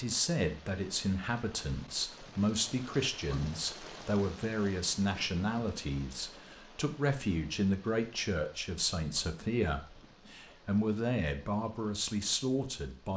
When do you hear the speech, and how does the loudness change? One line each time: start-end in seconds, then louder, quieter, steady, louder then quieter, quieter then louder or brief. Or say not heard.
0.0-13.1 steady.